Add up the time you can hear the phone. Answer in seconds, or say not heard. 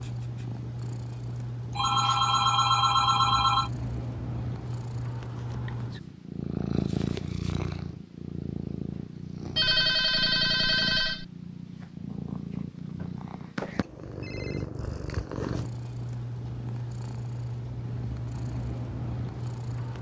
5 s.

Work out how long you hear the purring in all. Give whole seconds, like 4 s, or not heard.
20 s.